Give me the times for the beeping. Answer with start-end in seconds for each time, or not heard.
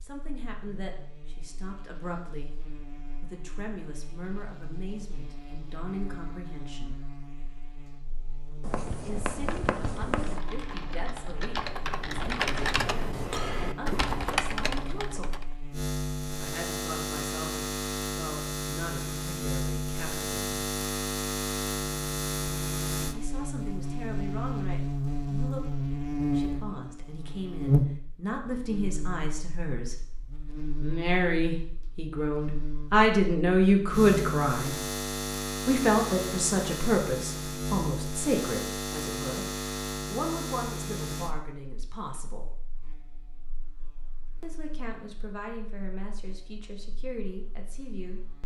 not heard.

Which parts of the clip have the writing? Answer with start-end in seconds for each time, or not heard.
8.6-10.4.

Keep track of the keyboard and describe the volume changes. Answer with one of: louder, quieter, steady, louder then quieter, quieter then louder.
louder.